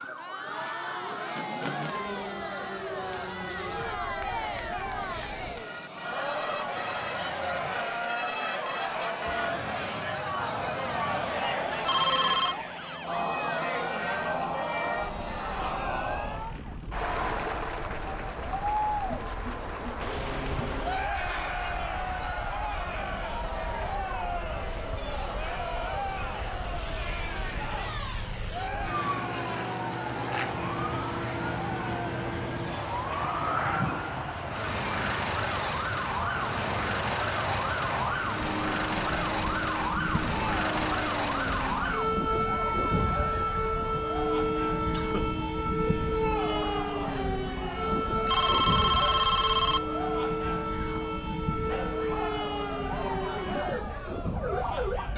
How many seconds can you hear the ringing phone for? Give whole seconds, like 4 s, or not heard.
2 s.